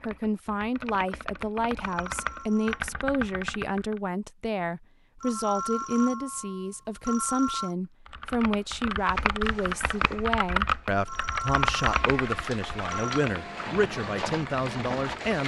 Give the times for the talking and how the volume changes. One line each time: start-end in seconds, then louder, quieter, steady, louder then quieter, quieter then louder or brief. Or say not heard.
0.1-15.4 steady.